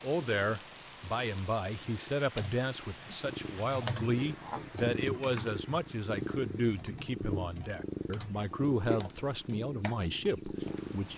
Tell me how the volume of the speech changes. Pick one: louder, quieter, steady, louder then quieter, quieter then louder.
steady.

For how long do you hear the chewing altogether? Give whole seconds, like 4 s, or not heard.
not heard.